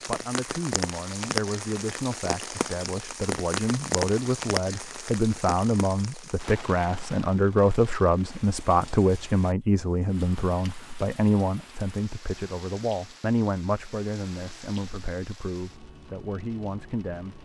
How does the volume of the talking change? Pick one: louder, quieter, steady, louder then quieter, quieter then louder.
louder then quieter.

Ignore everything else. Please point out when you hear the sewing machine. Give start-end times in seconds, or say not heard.
not heard.